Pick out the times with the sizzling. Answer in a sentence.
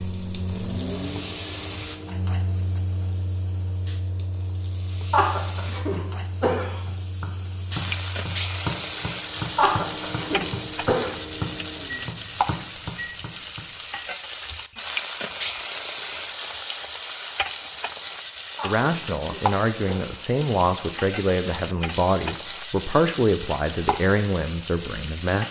The sizzling can be heard from 0.0 to 25.4 s.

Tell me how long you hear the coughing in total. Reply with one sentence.
The coughing can be heard for 5 seconds in total.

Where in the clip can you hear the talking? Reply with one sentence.
The talking can be heard from 18.6 to 25.4 s.